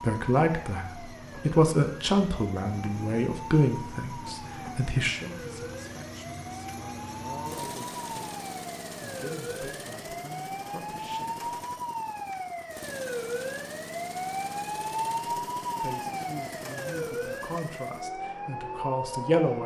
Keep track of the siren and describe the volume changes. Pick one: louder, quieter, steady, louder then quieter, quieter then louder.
louder.